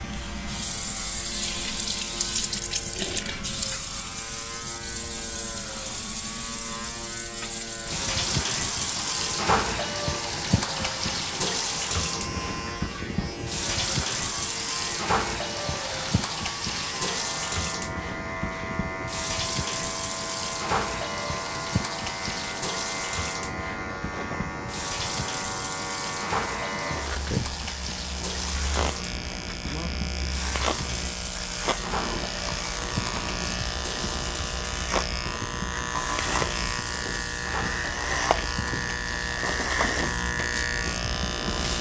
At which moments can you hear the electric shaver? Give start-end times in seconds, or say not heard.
0.0-41.7.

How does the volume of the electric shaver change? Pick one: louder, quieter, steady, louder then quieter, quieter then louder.
louder.